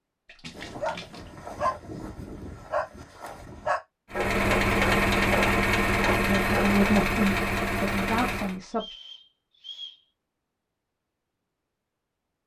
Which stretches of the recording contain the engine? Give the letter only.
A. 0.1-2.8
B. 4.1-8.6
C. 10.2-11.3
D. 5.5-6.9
B.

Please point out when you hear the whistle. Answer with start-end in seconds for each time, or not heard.
8.7-10.1.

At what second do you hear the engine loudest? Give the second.
5 s.